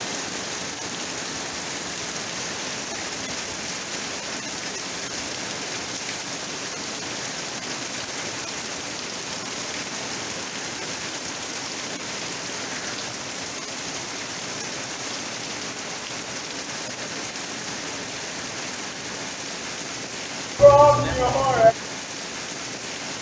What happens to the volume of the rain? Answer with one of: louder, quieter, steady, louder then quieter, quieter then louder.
steady.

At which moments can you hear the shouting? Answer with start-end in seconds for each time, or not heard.
20.6-21.8.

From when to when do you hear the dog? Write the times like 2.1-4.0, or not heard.
not heard.